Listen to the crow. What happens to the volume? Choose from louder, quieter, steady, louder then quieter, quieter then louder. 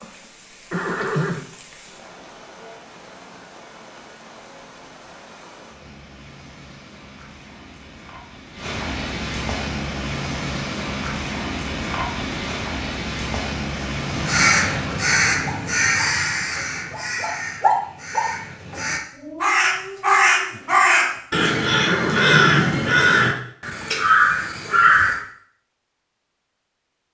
quieter then louder.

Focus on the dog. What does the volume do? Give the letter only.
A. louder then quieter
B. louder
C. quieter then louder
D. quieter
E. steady
A.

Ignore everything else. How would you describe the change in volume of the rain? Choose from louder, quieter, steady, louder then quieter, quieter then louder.
louder.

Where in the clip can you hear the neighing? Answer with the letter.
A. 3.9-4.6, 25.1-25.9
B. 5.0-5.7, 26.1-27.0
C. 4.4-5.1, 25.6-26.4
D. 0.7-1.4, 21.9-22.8
D.